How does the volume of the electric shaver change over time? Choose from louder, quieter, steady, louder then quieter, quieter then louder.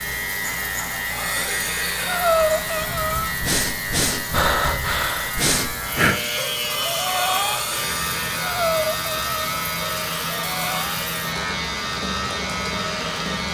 steady.